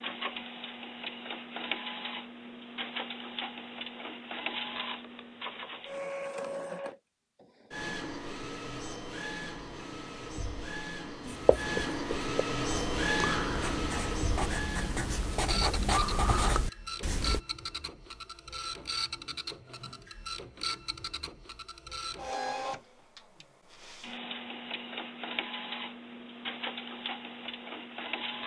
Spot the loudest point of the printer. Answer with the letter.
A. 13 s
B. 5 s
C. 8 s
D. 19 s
A.